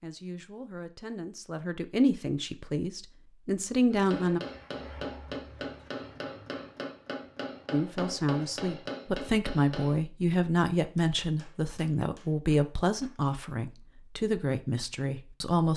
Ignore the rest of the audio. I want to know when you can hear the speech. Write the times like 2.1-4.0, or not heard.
0.0-4.4, 7.7-15.7.